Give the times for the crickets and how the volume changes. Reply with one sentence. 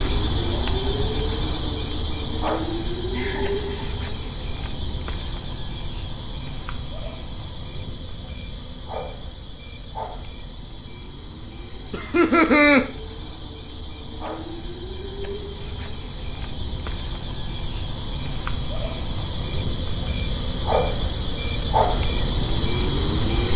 The crickets can be heard from 0.0 to 23.5 s, getting quieter then louder.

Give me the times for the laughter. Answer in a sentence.
The laughter can be heard from 3.1 to 4.0 s and from 11.9 to 12.8 s.